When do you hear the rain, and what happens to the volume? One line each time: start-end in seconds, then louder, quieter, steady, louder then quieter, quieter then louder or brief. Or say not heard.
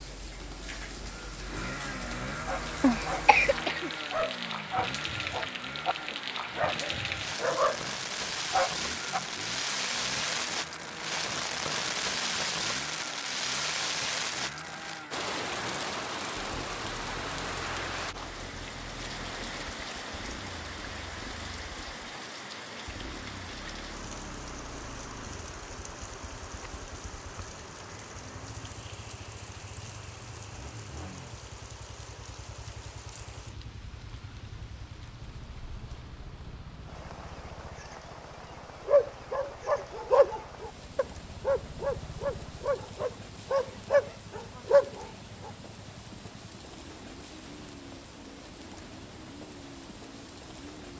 0.0-50.9 quieter.